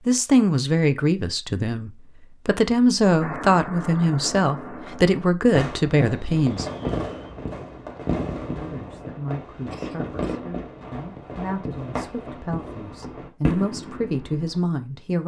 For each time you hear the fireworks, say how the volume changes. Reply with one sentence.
You can hear the fireworks from 3.2 to 14.6 s, at a steady volume.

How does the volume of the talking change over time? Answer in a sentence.
The volume of the talking goes down, then up.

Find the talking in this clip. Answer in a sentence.
The talking can be heard from 0.1 to 6.7 s and from 8.6 to 15.2 s.